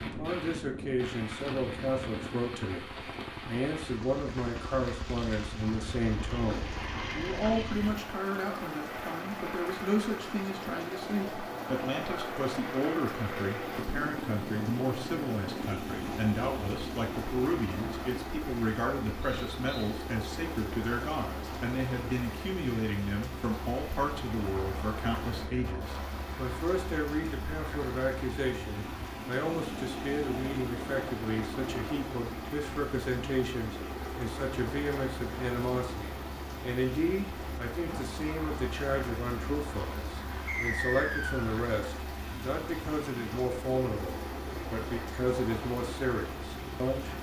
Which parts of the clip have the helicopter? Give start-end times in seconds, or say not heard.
0.0-47.1.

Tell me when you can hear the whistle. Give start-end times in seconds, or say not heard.
19.2-19.9, 40.5-41.5.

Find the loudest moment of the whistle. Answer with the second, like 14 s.
41 s.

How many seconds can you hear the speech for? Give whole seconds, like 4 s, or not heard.
47 s.